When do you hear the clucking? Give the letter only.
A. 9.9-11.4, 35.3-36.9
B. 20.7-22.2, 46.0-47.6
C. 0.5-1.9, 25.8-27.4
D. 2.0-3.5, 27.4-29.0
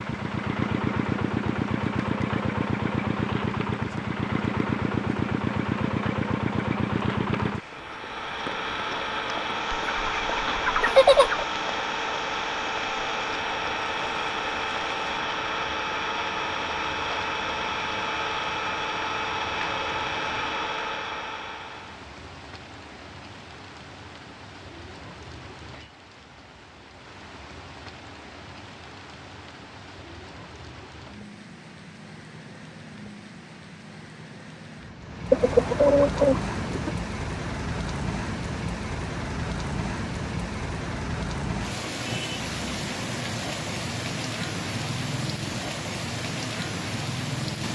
A.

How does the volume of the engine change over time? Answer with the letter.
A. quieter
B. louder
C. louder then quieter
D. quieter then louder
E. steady
E.